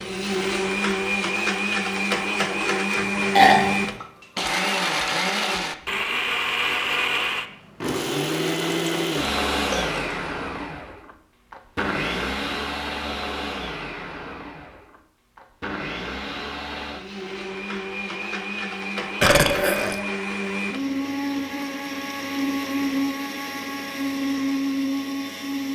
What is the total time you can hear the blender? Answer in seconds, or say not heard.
26 s.